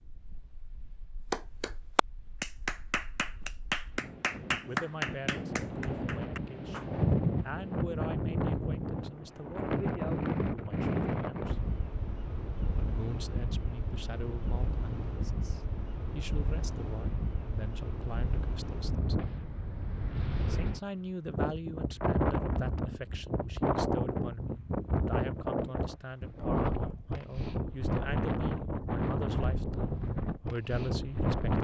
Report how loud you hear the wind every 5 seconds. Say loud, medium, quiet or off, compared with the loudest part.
quiet, loud, loud, medium, loud, loud, loud.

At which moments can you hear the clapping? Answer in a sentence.
The clapping can be heard from 1.3 to 6.8 s.